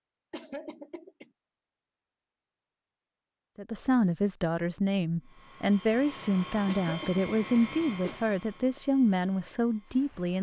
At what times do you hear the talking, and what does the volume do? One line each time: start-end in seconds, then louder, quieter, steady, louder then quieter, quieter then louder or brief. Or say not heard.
3.5-10.3 steady.